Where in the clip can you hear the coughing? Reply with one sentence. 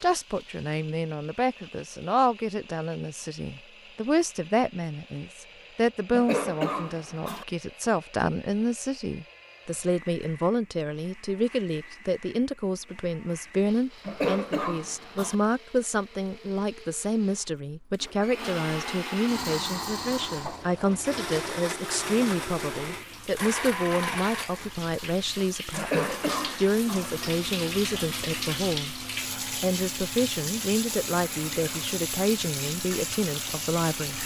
You can hear the coughing from 6.1 to 7.5 s, from 14.1 to 15.3 s and from 25.8 to 27.1 s.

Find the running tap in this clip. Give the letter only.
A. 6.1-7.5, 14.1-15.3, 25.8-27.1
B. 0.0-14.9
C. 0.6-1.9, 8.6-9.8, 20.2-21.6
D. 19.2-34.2
D.